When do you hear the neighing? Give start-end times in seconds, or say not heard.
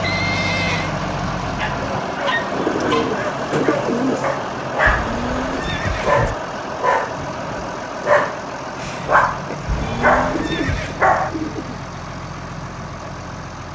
0.0-0.9, 4.8-6.3, 9.7-10.9.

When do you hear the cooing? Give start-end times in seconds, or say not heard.
2.5-4.4, 9.8-11.8.